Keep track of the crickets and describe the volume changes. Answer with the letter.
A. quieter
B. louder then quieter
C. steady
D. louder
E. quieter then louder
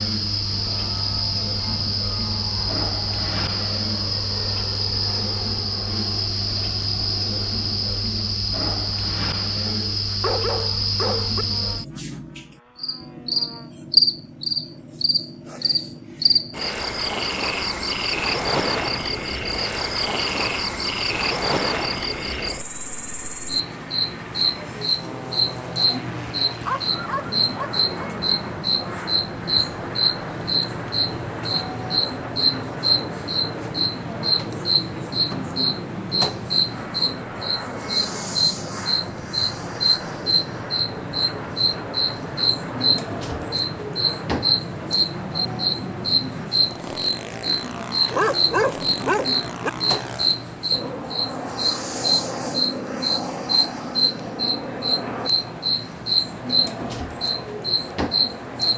C.